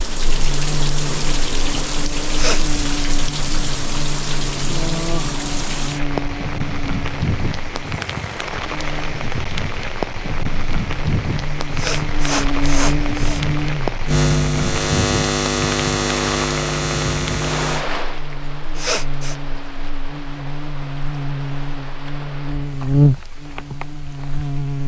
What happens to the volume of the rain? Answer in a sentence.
The volume of the rain goes down.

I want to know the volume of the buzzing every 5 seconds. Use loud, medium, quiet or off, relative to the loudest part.
medium, medium, loud, loud, loud.